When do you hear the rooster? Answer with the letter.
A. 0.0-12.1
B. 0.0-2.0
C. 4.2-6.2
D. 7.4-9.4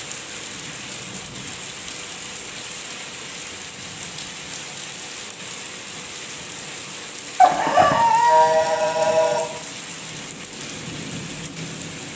D.